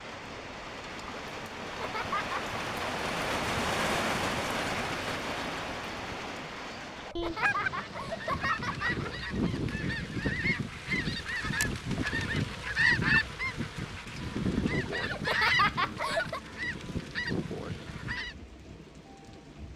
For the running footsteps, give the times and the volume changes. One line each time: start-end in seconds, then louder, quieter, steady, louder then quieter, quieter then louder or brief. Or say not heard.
not heard.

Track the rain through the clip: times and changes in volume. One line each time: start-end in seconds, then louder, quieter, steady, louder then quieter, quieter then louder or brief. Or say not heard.
0.0-19.7 quieter.